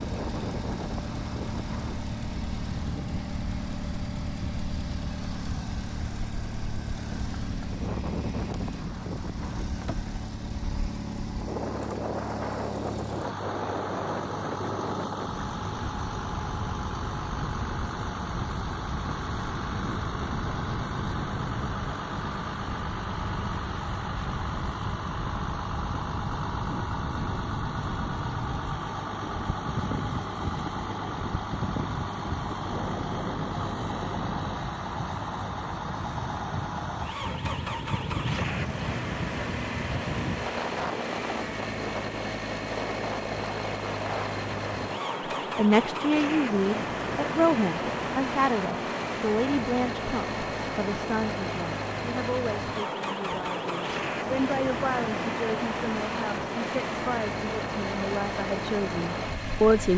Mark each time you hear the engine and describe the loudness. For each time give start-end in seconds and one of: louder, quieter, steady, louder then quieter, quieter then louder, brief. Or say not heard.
0.0-59.9 steady.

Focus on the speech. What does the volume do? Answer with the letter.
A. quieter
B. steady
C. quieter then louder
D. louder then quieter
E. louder
C.